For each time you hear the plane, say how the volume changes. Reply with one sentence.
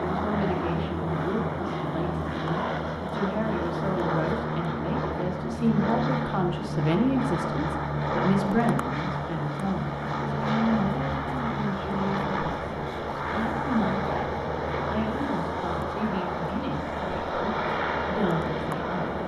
You can hear the plane from 0.0 to 19.2 s, at a steady volume.